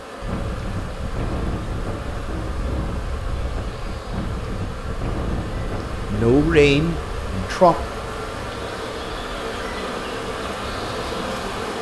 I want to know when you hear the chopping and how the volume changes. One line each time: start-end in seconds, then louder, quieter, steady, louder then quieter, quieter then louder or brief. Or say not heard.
not heard.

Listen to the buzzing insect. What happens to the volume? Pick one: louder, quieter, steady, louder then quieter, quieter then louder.
louder.